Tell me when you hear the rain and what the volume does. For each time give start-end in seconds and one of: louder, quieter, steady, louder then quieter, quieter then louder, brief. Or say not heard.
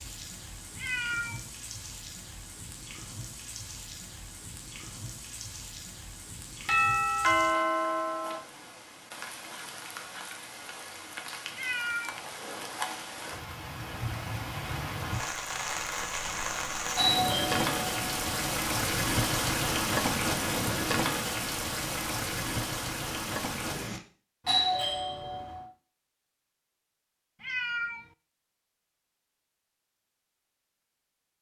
0.0-24.0 louder.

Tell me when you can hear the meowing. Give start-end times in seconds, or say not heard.
0.8-1.4, 11.5-12.2, 27.4-28.1.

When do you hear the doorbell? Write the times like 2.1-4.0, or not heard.
6.7-8.3, 16.9-18.4, 24.4-25.6.